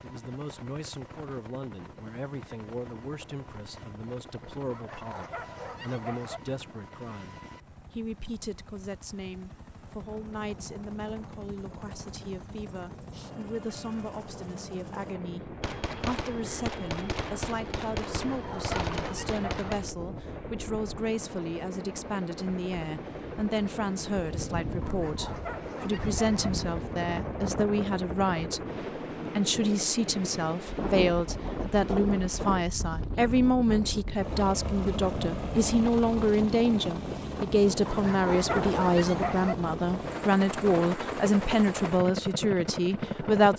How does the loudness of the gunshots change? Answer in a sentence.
The volume of the gunshots stays about the same.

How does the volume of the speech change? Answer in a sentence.
The volume of the speech goes up.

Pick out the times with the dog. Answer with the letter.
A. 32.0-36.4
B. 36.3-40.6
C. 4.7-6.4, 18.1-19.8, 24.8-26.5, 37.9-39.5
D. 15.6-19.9
C.